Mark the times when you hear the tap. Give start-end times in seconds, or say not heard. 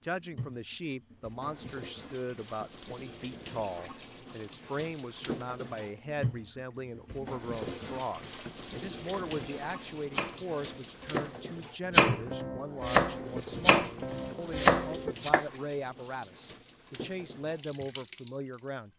0.0-18.9.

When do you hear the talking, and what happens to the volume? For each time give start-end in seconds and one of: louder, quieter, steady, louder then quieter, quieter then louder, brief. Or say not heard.
0.0-18.9 steady.